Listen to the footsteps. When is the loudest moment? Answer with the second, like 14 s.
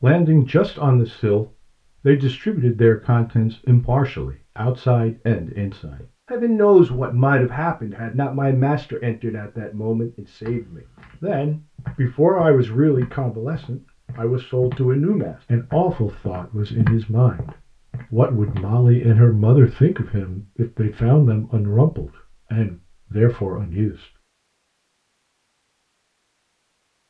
17 s.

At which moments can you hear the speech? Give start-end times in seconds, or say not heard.
0.0-17.5, 18.1-24.1.